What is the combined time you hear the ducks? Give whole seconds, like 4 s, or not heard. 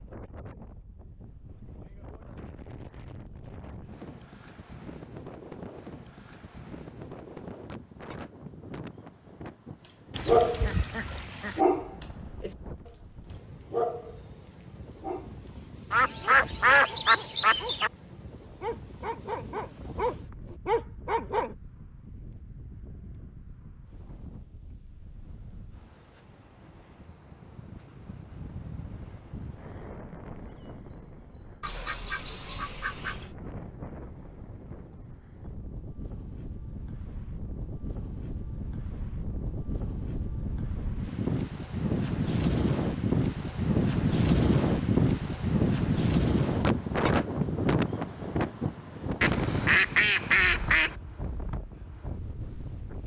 7 s.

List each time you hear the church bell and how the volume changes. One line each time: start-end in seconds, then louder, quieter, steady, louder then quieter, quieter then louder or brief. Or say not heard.
not heard.